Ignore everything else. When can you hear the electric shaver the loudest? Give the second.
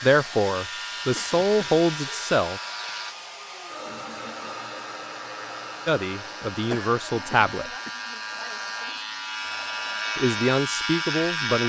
11 s.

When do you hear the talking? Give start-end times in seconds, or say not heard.
0.0-2.6, 5.8-7.7, 10.2-11.6.